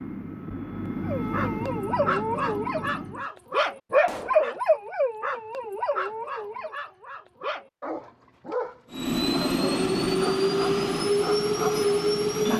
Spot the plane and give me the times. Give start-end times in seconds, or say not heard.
0.0-3.3, 8.9-12.5.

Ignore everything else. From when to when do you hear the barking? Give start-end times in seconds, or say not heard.
1.1-12.5.